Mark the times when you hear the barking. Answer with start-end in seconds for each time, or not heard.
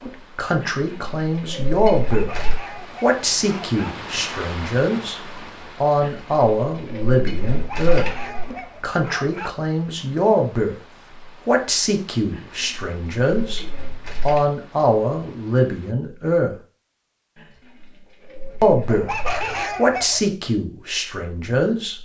2.0-4.0, 7.5-9.5, 18.9-20.4.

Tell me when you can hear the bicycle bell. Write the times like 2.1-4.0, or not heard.
not heard.